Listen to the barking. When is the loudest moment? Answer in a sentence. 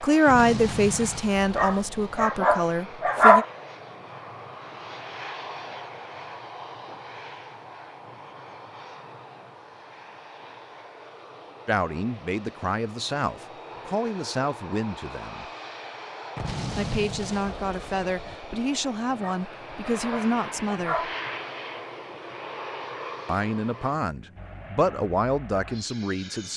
The volume of the barking peaks at 3 seconds.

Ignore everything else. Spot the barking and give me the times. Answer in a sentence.
The barking can be heard from 1.6 to 3.5 s and from 19.2 to 21.1 s.